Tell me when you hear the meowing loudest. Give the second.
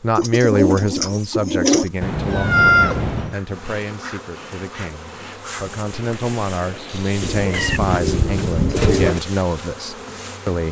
3 s.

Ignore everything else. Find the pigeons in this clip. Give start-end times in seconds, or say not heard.
0.1-1.9, 7.2-9.2.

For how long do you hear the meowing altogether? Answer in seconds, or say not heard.
3 s.